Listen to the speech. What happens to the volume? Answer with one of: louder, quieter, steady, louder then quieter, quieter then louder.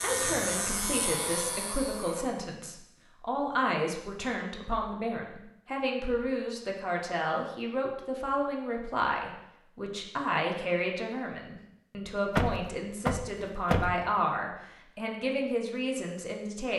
steady.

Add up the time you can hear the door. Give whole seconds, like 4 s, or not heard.
2 s.